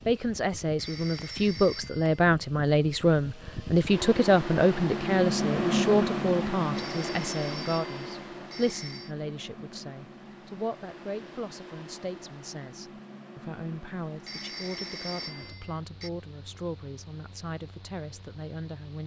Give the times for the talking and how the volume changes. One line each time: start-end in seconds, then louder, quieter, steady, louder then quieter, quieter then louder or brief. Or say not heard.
0.1-19.0 quieter.